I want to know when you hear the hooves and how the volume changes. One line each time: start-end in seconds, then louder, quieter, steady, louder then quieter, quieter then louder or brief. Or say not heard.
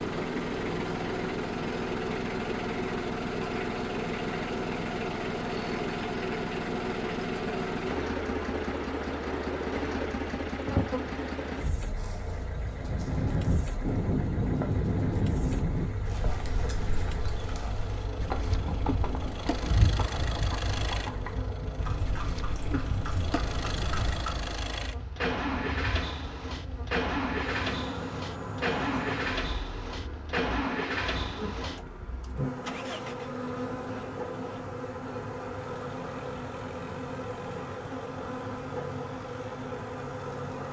12.8-24.6 quieter.